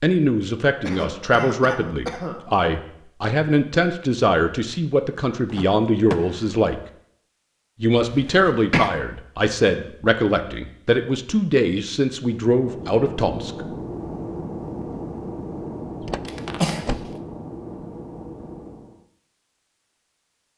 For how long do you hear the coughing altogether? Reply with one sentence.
The coughing can be heard for 3 seconds in total.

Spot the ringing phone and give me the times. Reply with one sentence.
The ringing phone can't be heard in this clip.